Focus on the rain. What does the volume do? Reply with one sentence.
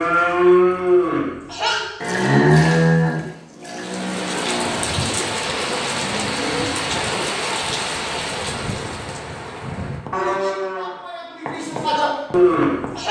The loudness of the rain goes down.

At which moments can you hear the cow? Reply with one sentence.
You can hear the cow from 0.0 to 6.7 s and from 10.1 to 13.0 s.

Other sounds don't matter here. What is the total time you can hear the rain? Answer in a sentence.
The rain can be heard for 9 seconds in total.